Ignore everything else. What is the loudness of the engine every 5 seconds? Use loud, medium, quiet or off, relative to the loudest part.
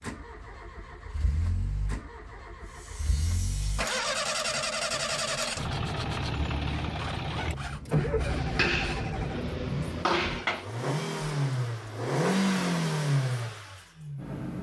medium, loud, loud.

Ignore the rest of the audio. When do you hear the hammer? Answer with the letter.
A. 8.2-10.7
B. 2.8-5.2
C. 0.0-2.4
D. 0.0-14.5
A.